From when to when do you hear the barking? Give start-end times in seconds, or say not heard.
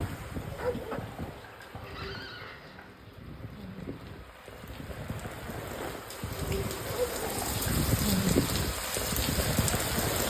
0.5-1.1, 6.8-7.3.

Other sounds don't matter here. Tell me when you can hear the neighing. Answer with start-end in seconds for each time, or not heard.
0.9-3.0, 7.2-7.8.